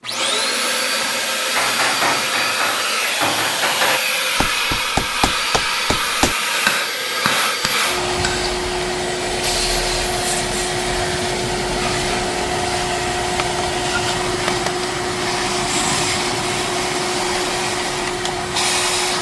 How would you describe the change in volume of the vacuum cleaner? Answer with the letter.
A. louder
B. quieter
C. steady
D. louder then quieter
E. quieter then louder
C.